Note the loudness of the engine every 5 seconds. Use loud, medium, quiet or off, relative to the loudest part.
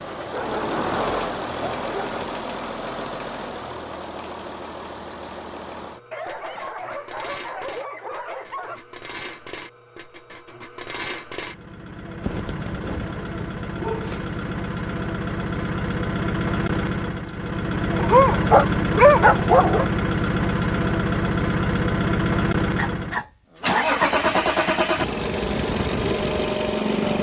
medium, quiet, medium, loud, loud, loud.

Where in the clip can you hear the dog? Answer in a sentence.
You can hear the dog from 0.1 to 2.4 s, from 6.1 to 8.8 s, from 12.2 to 14.3 s, from 17.9 to 19.9 s and from 22.8 to 24.1 s.